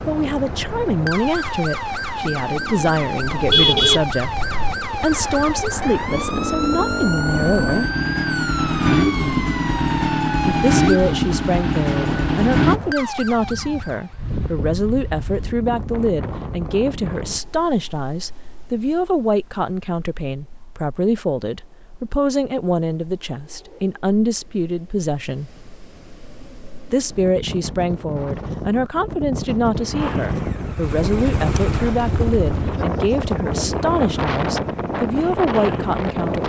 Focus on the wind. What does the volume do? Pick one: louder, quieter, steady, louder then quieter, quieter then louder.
quieter then louder.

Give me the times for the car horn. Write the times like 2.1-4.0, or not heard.
3.3-4.8.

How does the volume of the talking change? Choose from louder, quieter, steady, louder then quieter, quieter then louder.
steady.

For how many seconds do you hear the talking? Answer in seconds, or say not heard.
32 s.